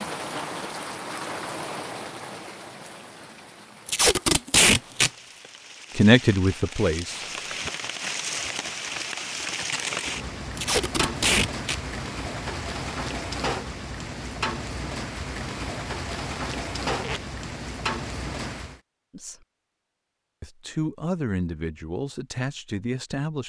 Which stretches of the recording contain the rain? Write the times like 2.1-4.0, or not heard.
0.0-18.8.